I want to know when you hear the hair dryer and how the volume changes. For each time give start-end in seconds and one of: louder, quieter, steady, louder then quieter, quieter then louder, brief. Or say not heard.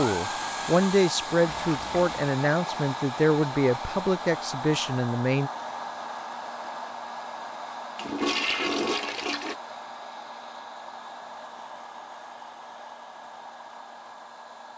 0.0-14.7 quieter.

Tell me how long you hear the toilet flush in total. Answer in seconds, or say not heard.
2 s.